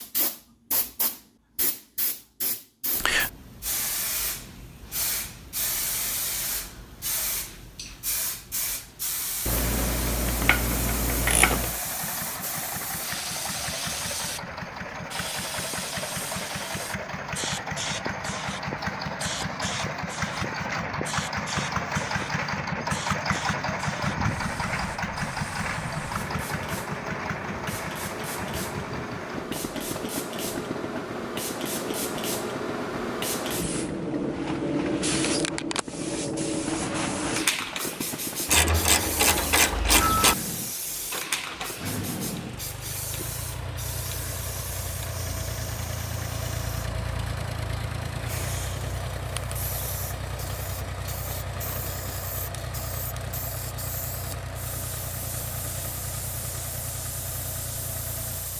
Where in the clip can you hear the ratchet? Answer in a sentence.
The ratchet can be heard from 9.4 to 11.8 s and from 38.5 to 40.4 s.